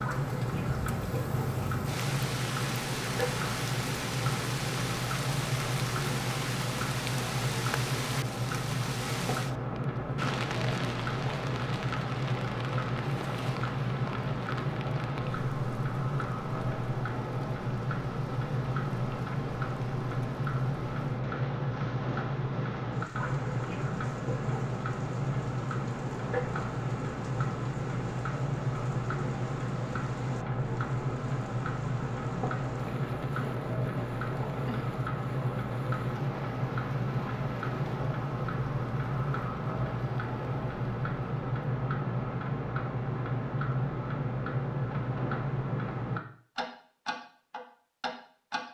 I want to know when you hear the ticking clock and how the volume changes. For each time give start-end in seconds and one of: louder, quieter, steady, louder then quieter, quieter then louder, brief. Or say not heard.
0.0-48.6 steady.